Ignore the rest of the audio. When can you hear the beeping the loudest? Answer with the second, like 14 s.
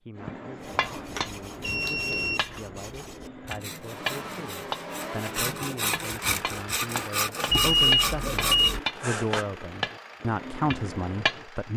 8 s.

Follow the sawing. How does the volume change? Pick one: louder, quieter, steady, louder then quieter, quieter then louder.
louder.